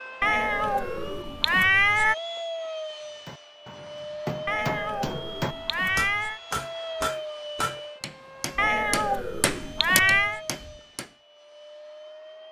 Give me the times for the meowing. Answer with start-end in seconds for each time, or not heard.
0.2-2.1, 4.5-6.4, 8.6-10.4.